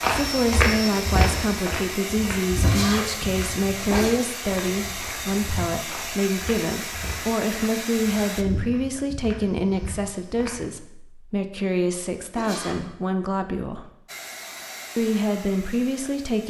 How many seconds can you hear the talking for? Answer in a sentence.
You can hear the talking for 15 seconds altogether.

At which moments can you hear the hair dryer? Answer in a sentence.
You can hear the hair dryer from 0.0 to 8.4 s and from 14.1 to 16.4 s.